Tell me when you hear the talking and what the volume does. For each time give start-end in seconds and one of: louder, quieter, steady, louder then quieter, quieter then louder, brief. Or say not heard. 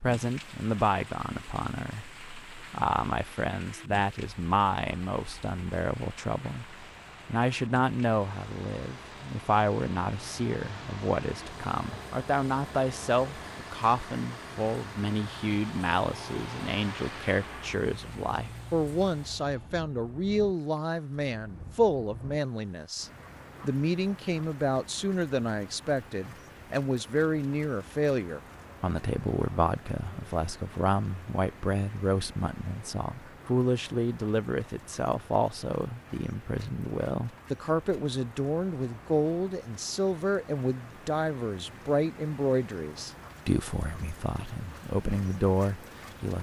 0.0-46.3 steady.